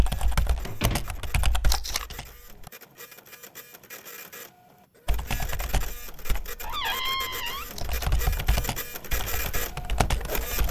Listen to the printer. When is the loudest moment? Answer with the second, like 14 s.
9 s.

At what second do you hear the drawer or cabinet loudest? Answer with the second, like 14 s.
7 s.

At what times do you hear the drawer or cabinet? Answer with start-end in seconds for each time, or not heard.
0.6-1.2, 6.6-7.7.